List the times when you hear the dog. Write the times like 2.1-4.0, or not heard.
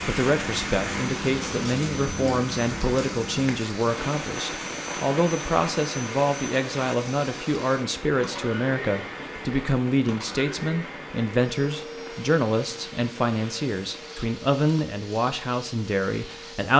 not heard.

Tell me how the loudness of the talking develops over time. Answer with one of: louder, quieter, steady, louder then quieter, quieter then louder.
steady.